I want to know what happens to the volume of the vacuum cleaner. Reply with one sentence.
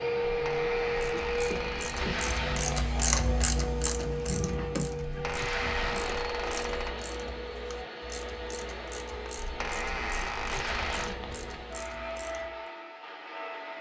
The volume of the vacuum cleaner goes down.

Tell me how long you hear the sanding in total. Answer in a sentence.
The sanding can't be heard in this clip.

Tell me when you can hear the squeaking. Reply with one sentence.
You can hear the squeaking from 0.2 to 1.9 s, from 5.0 to 7.0 s and from 9.4 to 11.1 s.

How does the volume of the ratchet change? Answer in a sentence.
The loudness of the ratchet goes down.